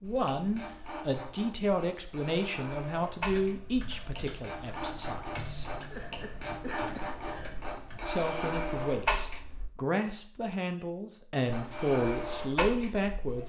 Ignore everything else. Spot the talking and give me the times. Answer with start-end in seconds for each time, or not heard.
0.0-5.7, 8.1-13.4.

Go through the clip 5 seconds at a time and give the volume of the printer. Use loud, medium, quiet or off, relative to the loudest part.
medium, loud, loud.